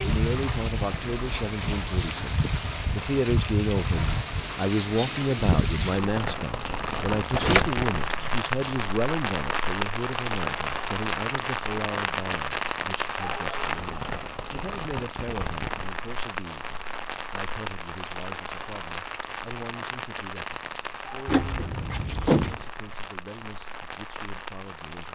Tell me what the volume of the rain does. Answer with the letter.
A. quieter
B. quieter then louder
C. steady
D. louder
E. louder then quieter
A.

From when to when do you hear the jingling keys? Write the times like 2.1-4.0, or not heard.
7.2-8.8, 21.2-22.6.